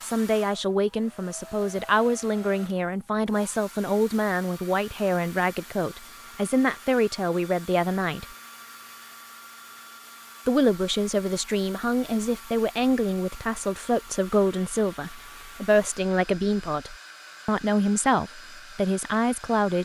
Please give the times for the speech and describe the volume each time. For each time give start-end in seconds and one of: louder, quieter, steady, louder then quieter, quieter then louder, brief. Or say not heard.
0.0-8.2 steady
10.4-19.8 steady.